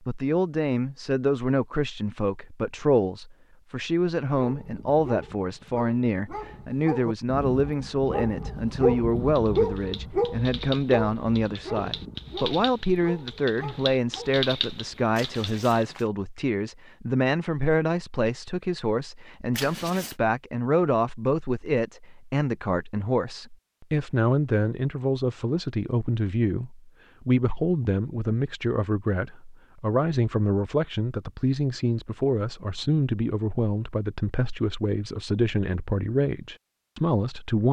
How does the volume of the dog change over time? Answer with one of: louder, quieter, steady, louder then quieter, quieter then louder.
louder then quieter.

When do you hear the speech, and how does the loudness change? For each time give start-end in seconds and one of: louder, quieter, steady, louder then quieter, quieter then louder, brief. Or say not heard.
0.0-37.6 steady.